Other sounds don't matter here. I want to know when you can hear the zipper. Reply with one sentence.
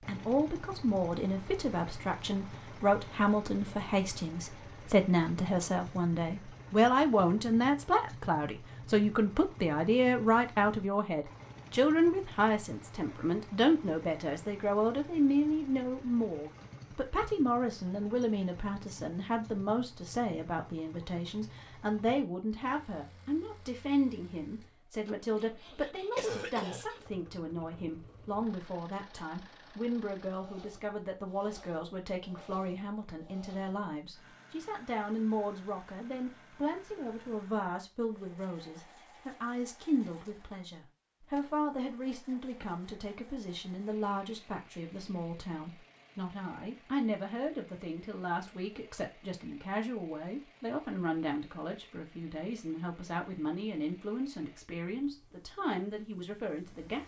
The zipper can't be heard in this clip.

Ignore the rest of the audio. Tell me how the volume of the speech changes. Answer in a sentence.
The volume of the speech goes down.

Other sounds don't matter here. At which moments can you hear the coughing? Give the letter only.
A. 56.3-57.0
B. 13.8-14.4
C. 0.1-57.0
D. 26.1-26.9
D.